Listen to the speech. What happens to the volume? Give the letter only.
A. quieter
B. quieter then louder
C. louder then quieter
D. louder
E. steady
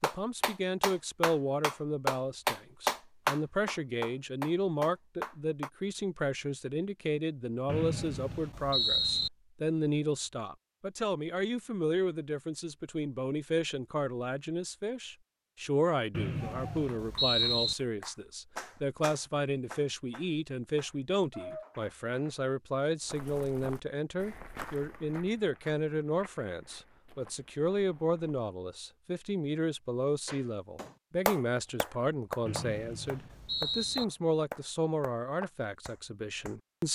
E.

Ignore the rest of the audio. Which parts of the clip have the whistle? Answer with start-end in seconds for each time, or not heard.
7.7-9.3, 16.1-17.8, 32.5-34.0.